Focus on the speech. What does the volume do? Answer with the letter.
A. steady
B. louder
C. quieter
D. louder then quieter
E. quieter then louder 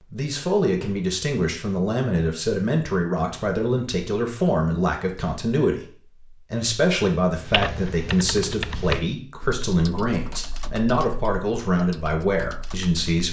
A.